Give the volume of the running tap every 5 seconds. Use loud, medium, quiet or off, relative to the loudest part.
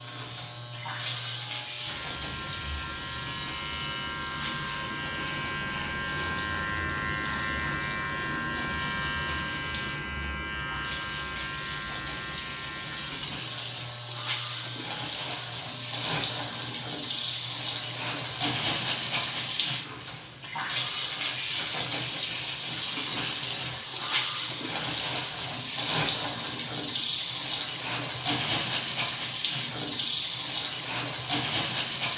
medium, quiet, medium, loud, loud, loud, loud.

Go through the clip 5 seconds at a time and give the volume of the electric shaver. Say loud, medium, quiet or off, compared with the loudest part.
medium, loud, medium, medium, off, off, off.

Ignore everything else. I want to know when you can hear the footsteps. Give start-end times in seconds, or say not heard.
not heard.